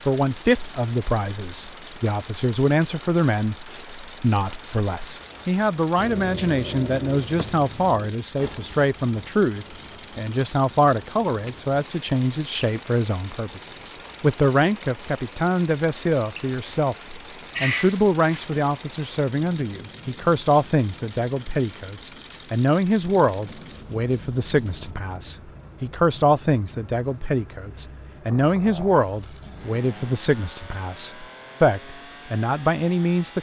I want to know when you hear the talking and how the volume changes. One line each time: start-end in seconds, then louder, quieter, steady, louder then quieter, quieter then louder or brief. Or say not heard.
0.1-33.3 steady.